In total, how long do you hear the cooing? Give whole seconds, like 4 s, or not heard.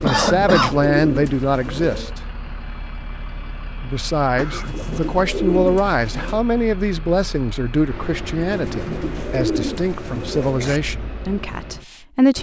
6 s.